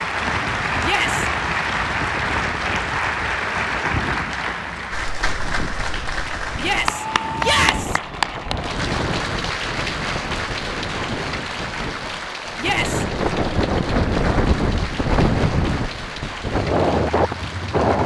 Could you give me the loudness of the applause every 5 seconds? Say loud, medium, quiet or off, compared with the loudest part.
loud, loud, medium, medium.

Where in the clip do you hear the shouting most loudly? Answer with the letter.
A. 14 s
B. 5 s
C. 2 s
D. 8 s
D.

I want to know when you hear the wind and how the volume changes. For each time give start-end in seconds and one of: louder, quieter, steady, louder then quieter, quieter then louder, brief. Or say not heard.
0.0-18.0 louder.